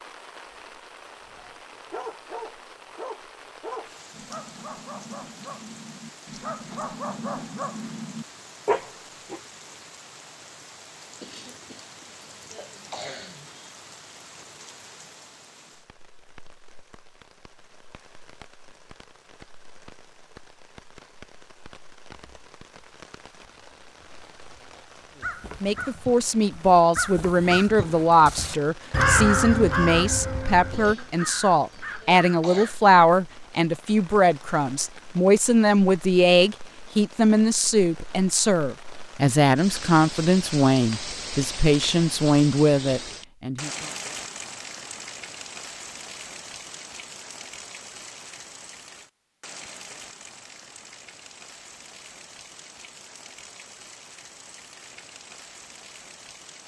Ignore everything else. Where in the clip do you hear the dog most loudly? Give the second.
9 s.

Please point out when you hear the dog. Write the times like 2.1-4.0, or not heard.
1.4-9.4.